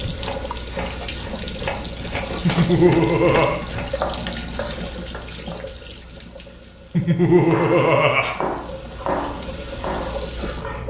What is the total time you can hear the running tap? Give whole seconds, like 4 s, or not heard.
11 s.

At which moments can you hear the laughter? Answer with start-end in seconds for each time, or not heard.
2.5-3.6, 7.0-8.3.